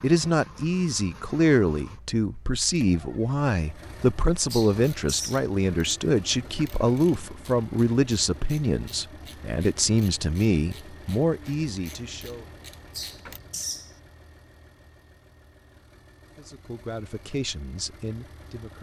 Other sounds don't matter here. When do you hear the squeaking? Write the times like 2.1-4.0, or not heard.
4.5-5.4, 12.9-13.9.